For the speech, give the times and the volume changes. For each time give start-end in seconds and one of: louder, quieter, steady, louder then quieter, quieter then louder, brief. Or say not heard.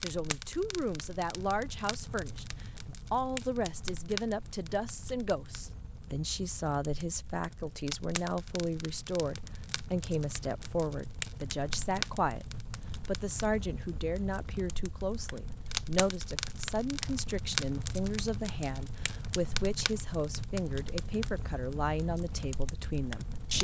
0.0-12.4 steady
13.1-23.5 steady.